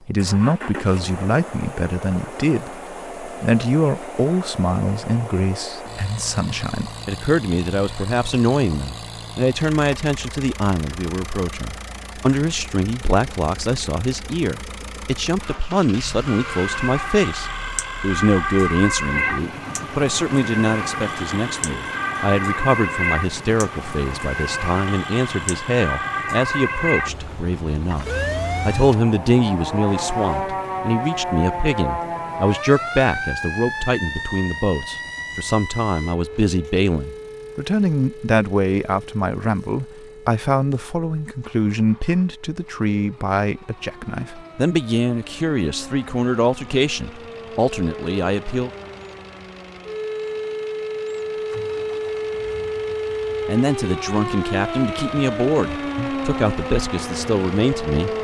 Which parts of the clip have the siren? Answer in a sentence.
The siren can be heard from 16.2 to 58.1 s.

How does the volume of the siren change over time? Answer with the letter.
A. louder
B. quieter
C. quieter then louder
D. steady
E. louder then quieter
C.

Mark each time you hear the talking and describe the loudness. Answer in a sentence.
You can hear the talking from 0.1 to 48.7 s, at a steady volume; and from 53.5 to 58.1 s, at a steady volume.